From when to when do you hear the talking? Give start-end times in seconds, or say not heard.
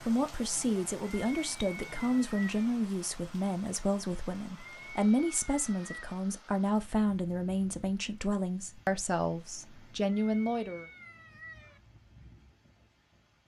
0.0-10.8.